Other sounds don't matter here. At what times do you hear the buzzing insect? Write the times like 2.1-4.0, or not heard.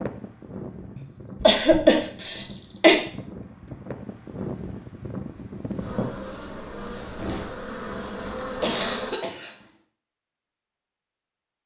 5.8-9.2.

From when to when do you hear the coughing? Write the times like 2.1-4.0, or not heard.
0.9-3.0, 8.6-9.6.